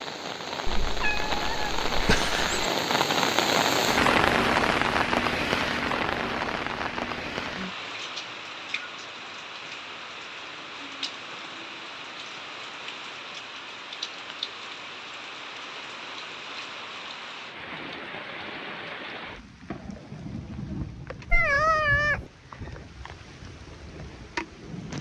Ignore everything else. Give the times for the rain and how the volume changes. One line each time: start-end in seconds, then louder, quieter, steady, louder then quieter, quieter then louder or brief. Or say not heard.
0.0-24.9 quieter.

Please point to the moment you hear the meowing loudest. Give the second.
22 s.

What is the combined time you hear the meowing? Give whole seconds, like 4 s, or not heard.
3 s.